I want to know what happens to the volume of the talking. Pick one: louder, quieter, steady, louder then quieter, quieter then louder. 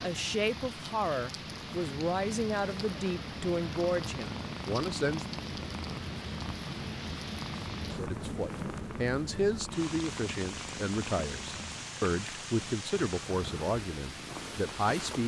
steady.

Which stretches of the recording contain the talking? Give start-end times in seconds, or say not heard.
0.0-5.3, 7.9-15.2.